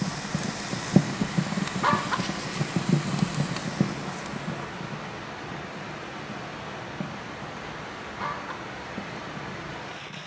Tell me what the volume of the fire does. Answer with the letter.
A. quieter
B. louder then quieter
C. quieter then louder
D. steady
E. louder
A.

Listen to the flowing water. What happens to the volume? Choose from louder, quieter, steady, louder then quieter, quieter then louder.
steady.